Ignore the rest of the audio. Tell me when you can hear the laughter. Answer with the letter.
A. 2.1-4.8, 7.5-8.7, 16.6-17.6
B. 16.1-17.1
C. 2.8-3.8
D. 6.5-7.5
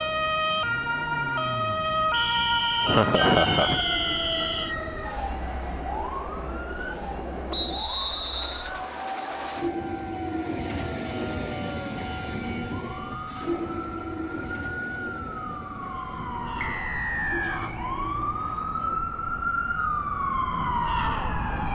C.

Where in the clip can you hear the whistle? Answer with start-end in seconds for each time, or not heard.
2.1-4.8, 7.5-8.7, 16.6-17.6.